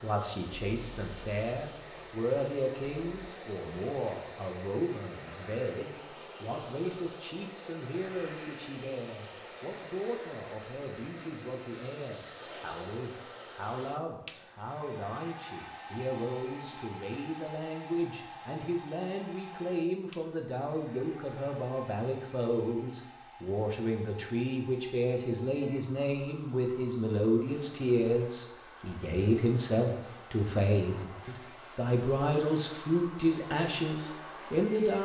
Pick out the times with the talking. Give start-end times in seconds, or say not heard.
0.0-34.9.